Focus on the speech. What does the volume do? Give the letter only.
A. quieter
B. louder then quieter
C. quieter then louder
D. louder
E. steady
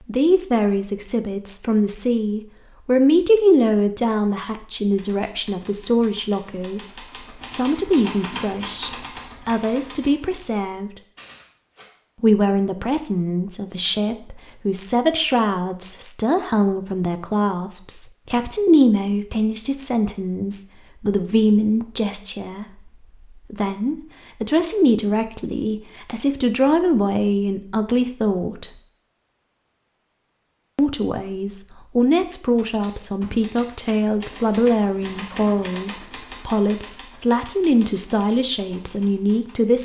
E.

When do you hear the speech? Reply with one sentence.
The speech can be heard from 0.1 to 11.0 s, from 12.2 to 28.8 s and from 30.8 to 39.8 s.